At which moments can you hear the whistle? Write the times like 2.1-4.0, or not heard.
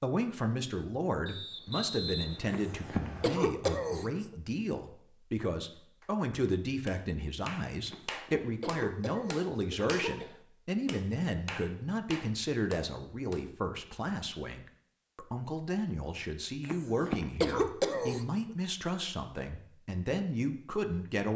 1.2-3.2.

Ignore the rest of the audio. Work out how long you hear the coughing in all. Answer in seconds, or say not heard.
6 s.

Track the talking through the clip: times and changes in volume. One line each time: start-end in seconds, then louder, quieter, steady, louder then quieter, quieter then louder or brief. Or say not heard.
0.0-21.3 steady.